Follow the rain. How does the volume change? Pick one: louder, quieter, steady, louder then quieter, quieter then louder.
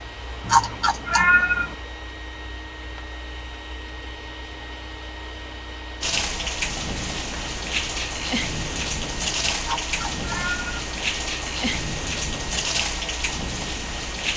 steady.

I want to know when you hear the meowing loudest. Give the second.
1 s.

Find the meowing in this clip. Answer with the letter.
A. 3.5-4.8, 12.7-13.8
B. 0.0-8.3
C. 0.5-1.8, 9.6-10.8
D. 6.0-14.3
C.